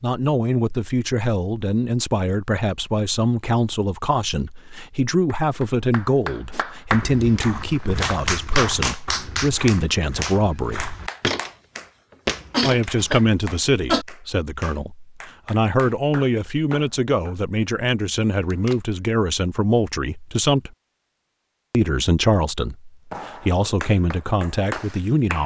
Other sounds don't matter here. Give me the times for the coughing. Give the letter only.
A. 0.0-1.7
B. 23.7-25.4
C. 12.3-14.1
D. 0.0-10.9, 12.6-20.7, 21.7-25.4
C.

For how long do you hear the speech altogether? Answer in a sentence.
The speech can be heard for 23 seconds in total.